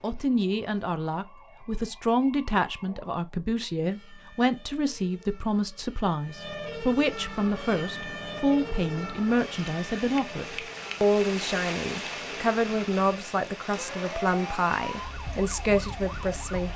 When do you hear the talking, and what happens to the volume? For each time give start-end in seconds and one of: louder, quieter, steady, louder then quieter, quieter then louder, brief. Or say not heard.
0.0-16.7 steady.